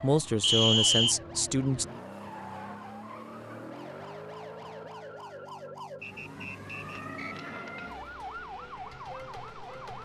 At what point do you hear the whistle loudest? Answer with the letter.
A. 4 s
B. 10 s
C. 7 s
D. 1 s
D.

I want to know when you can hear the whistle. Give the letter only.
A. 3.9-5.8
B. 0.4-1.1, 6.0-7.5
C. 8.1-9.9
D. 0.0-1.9
B.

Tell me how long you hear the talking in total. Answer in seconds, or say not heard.
2 s.